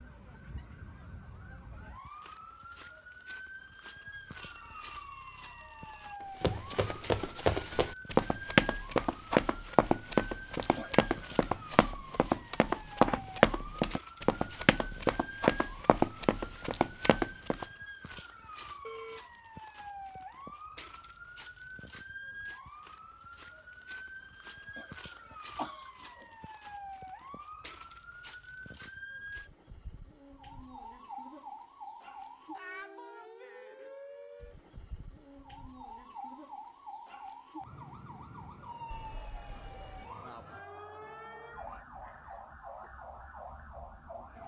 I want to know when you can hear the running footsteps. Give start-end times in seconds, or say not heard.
6.4-17.6.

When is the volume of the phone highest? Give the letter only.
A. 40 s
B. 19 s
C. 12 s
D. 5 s
B.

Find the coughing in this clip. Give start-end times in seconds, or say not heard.
10.8-11.4, 24.8-26.4.